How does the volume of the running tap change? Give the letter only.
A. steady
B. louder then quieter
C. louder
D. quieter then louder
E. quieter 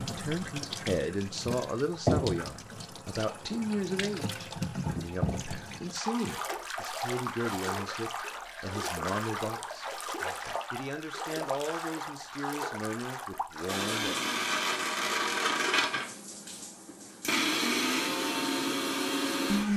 E.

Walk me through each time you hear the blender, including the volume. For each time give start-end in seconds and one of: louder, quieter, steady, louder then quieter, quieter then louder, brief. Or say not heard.
13.7-19.7 quieter then louder.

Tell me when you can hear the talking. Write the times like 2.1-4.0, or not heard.
0.0-14.2.